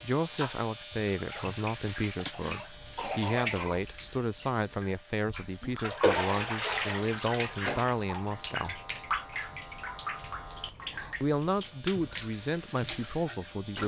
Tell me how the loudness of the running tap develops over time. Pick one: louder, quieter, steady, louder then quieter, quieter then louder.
louder then quieter.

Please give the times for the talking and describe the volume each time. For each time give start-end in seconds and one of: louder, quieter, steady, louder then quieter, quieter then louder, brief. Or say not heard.
0.0-8.8 steady
11.2-13.8 brief.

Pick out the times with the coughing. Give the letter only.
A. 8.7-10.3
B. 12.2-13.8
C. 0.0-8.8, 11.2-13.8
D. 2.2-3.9
D.